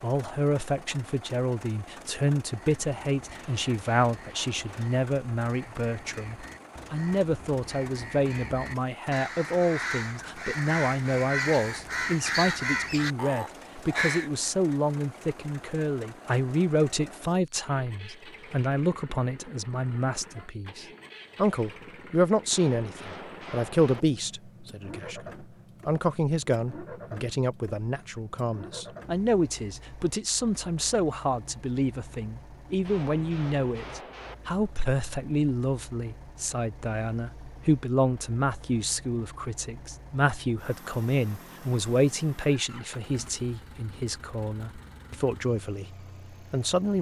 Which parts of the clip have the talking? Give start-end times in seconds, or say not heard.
0.0-46.9.